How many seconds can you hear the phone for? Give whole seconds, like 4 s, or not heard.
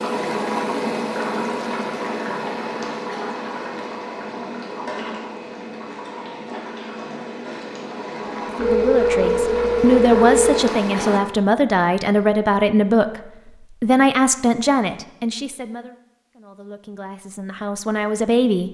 2 s.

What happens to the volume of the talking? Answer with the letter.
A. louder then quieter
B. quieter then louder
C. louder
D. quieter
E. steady
D.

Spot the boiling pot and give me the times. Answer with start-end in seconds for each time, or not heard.
0.0-11.2.